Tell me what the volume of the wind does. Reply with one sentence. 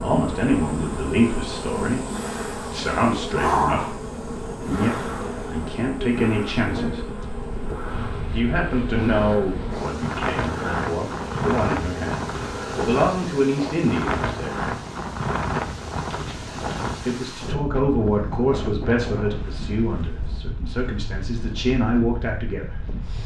The volume of the wind goes up, then down.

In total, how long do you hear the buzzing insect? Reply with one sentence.
You can hear the buzzing insect for 14 seconds altogether.